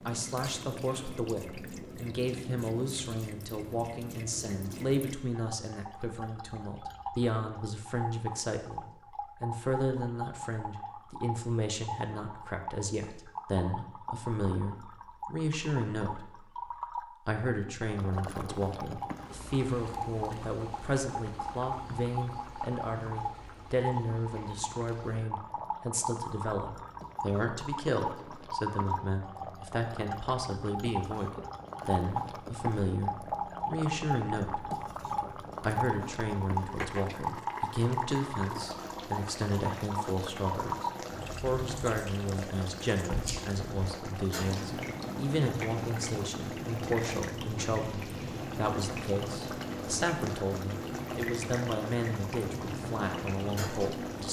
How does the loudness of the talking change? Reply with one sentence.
The loudness of the talking stays about the same.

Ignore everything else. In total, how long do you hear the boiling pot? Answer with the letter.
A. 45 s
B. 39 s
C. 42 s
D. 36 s
D.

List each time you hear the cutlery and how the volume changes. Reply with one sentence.
The cutlery can't be heard in this clip.